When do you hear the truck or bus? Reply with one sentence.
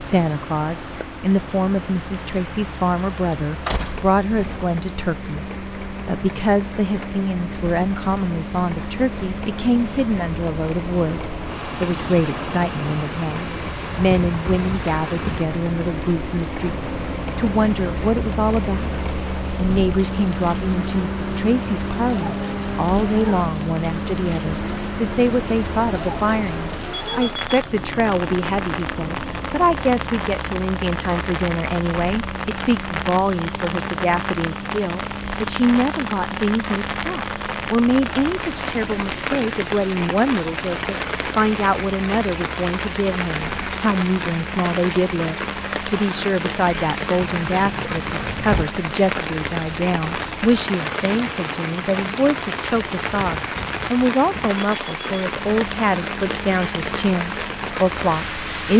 You can hear the truck or bus from 0.0 to 58.7 s.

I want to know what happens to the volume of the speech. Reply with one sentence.
The volume of the speech stays about the same.